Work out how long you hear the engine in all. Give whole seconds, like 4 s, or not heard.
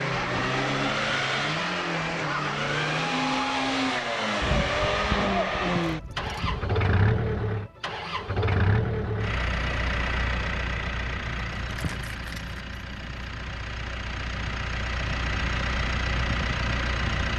17 s.